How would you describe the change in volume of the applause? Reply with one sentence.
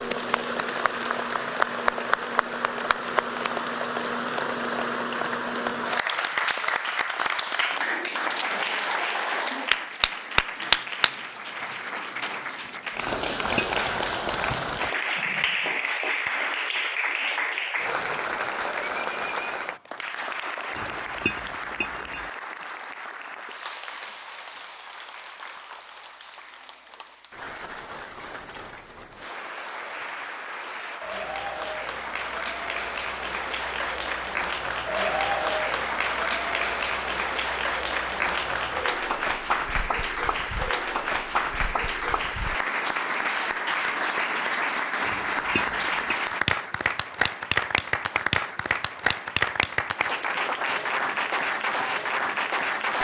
The loudness of the applause goes down, then up.